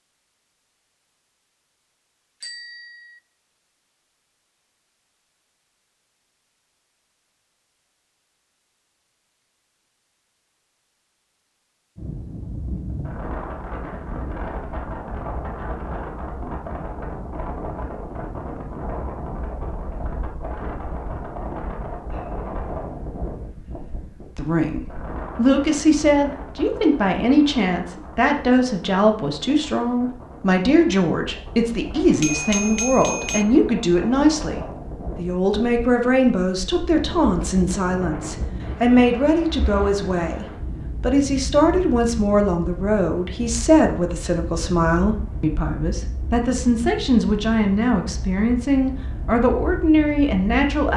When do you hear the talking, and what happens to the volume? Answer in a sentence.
The talking can be heard from 24.4 to 50.9 s, at a steady volume.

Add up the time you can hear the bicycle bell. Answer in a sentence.
The bicycle bell can be heard for 2 seconds in total.